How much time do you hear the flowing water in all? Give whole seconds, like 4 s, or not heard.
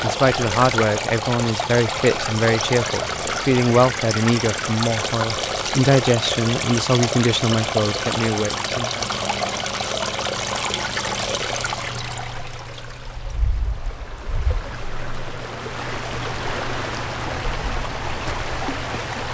19 s.